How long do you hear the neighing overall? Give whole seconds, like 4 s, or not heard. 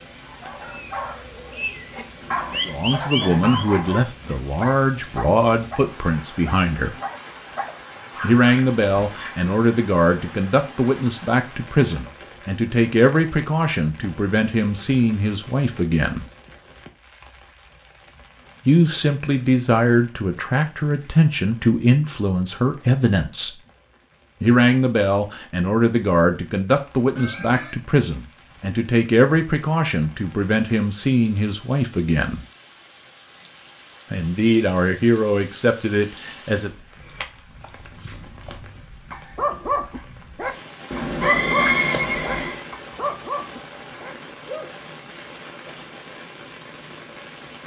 3 s.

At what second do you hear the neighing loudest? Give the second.
42 s.